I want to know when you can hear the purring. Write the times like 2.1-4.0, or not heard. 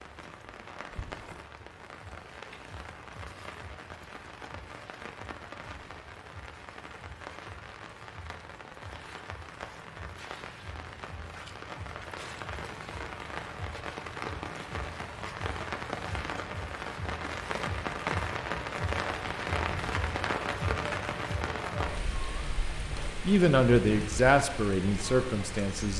not heard.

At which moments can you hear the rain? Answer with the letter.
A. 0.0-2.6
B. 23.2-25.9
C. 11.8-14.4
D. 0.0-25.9
D.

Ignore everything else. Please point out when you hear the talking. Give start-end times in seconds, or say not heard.
23.2-25.9.